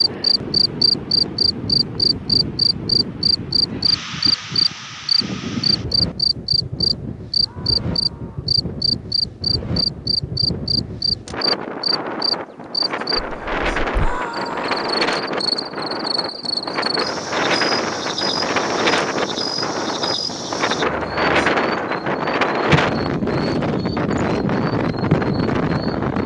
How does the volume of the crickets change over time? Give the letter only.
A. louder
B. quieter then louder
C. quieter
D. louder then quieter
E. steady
C.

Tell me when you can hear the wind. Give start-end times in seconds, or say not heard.
0.0-26.2.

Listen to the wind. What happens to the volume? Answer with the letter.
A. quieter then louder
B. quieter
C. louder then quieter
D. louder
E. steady
D.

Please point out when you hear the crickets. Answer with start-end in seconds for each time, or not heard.
0.0-26.2.